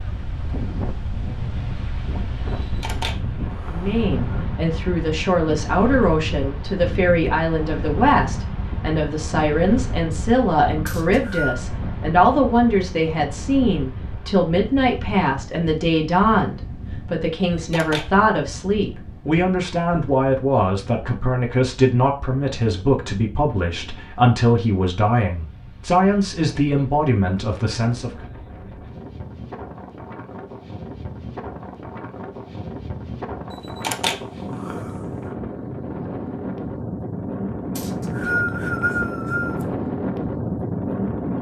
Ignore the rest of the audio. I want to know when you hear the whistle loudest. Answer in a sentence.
The loudest moment of the whistle is at 38 seconds.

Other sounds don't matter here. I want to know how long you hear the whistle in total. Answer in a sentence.
You can hear the whistle for 3 seconds altogether.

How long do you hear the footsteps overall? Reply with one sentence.
The footsteps can't be heard in this clip.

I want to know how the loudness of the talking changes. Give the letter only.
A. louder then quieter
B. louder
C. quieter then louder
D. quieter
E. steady
E.